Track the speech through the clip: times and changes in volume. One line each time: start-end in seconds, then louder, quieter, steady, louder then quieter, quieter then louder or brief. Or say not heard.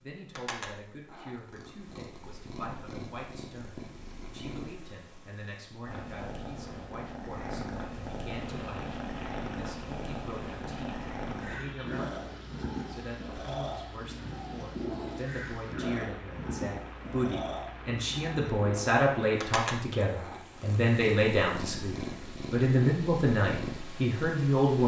0.0-24.8 louder.